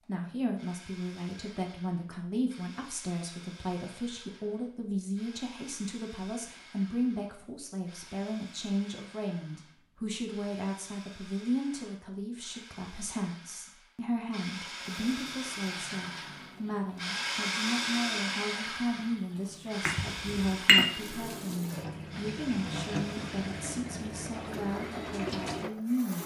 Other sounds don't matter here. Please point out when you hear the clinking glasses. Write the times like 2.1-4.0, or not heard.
19.9-20.9.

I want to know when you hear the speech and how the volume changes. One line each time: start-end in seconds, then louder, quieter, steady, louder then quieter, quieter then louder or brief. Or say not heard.
0.1-26.2 steady.